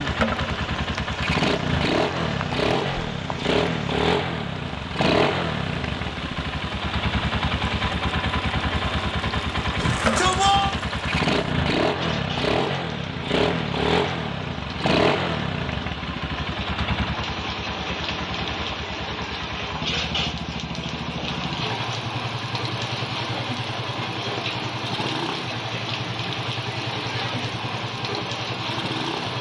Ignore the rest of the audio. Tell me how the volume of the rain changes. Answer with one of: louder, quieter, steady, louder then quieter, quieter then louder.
louder.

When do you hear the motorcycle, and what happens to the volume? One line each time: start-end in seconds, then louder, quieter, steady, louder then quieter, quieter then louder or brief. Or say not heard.
0.0-29.3 quieter.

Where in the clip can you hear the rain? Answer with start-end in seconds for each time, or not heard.
0.0-29.3.